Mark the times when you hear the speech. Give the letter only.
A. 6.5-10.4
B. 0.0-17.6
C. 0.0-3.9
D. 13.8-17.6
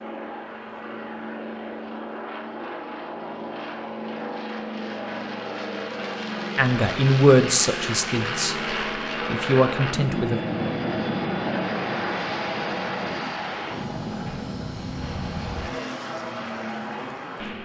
A.